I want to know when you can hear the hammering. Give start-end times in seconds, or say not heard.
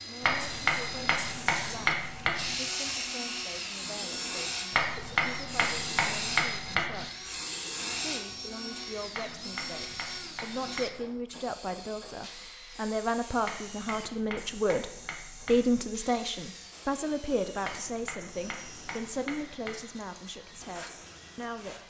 0.2-2.5, 4.7-7.0, 9.1-11.1, 13.4-15.8, 17.6-19.9.